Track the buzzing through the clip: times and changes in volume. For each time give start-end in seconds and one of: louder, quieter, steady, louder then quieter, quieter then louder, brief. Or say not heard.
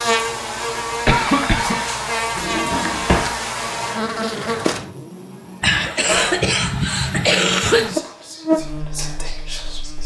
0.0-10.0 quieter then louder.